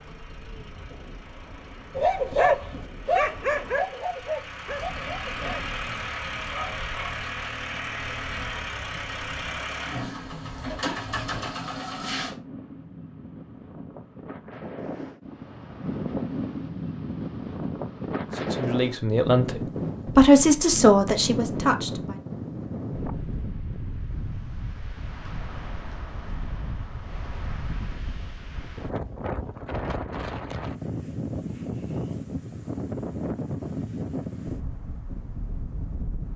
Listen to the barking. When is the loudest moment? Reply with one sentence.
The loudest moment of the barking is at 2 seconds.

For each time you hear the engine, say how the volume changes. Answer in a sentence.
The engine can be heard from 0.0 to 12.3 s, getting louder.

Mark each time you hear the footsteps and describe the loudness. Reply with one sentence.
You can't hear the footsteps here.